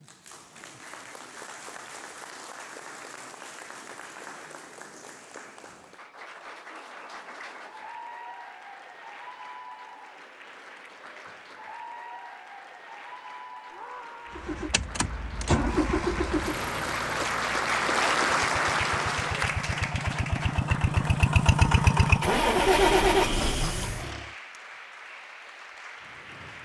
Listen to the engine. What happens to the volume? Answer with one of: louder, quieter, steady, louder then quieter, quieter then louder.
quieter then louder.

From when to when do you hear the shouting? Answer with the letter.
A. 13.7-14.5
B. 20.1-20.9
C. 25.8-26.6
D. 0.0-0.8
A.